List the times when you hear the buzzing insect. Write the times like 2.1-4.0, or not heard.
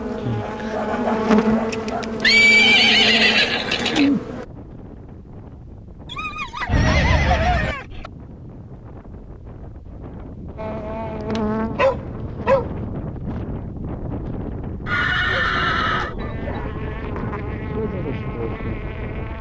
0.0-4.5, 10.6-12.9, 16.1-19.3.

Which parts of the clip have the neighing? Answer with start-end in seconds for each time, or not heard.
2.2-4.1, 6.7-7.8, 14.8-16.1.